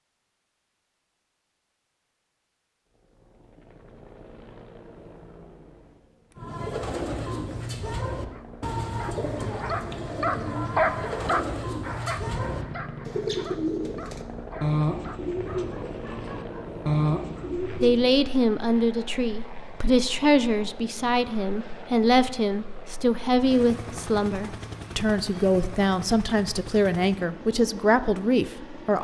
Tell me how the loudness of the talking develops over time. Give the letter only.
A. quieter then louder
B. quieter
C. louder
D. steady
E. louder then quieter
D.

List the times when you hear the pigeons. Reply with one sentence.
You can hear the pigeons from 6.3 to 18.1 s.